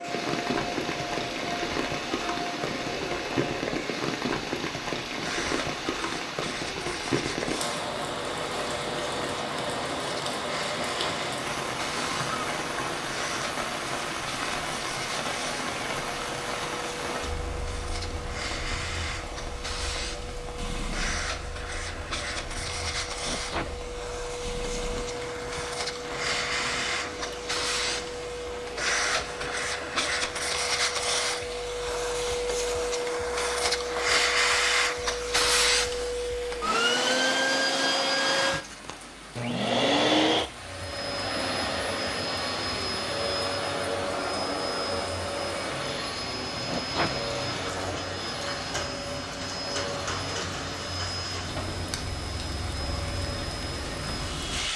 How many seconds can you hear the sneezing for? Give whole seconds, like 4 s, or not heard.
2 s.